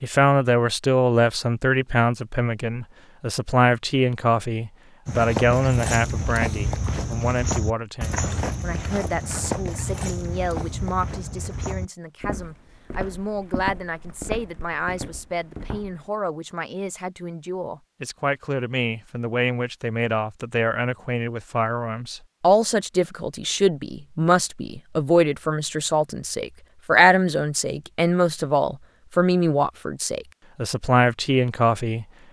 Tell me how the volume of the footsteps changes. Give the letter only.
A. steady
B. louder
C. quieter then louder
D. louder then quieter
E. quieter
E.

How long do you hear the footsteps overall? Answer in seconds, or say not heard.
11 s.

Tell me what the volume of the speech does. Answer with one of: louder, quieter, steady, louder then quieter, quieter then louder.
quieter then louder.